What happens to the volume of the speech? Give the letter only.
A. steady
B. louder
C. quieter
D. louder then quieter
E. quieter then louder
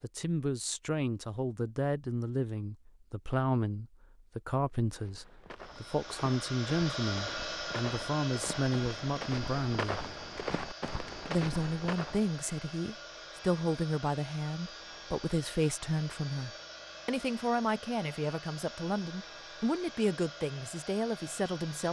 A.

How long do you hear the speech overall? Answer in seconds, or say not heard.
21 s.